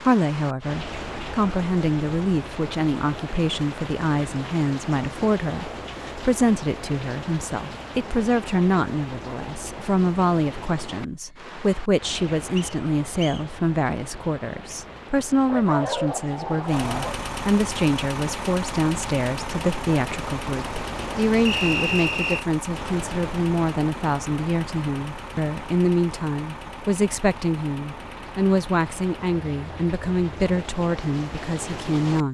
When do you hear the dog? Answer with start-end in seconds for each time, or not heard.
15.4-17.2.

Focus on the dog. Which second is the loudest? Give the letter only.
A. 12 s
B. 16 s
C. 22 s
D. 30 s
B.